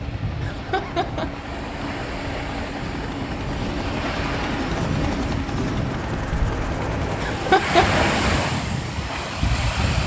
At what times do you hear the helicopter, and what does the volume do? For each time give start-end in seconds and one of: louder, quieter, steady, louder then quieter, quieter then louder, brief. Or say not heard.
0.0-7.5 louder.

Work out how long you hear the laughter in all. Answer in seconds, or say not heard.
2 s.